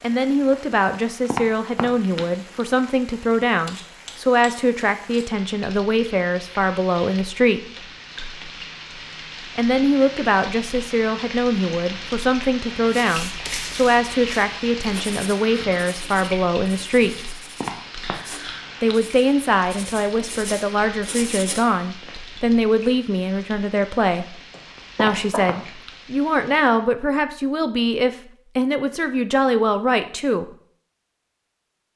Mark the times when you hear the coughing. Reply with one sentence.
The coughing can be heard from 24.5 to 25.9 s.